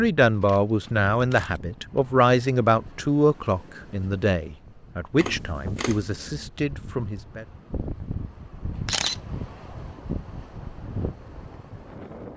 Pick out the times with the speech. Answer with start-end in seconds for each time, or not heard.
0.0-7.5.